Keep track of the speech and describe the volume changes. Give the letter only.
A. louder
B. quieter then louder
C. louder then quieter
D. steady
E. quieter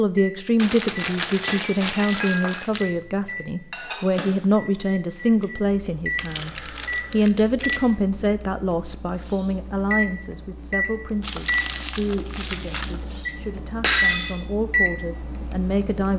E.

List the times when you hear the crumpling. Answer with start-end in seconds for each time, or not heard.
0.6-2.9, 6.2-7.8, 11.2-13.0.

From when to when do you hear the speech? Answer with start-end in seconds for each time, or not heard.
0.0-16.1.